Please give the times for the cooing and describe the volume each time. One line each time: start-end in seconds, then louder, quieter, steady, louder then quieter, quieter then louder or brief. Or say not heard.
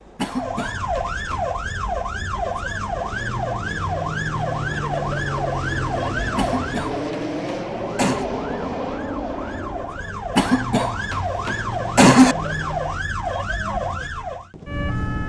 not heard.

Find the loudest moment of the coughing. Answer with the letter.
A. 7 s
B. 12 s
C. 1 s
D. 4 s
B.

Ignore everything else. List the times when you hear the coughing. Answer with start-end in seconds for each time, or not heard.
0.1-1.4, 6.3-8.2, 10.3-12.3.